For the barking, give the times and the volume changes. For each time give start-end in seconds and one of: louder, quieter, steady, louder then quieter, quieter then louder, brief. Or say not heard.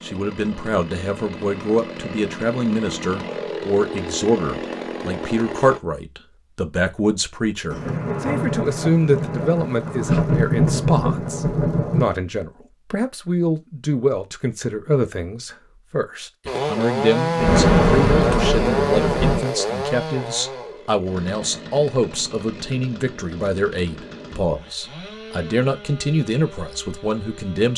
not heard.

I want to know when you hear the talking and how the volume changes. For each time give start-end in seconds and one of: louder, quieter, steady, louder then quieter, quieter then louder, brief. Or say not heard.
0.0-27.7 steady.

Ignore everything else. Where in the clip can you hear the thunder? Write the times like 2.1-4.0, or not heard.
7.7-12.1, 17.4-19.4.